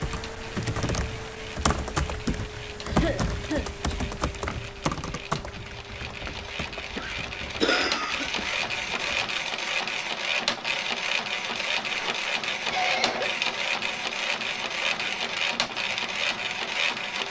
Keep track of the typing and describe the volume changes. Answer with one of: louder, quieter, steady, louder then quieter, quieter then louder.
quieter.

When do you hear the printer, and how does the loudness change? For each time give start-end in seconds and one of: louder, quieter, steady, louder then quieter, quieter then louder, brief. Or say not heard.
0.0-17.2 louder.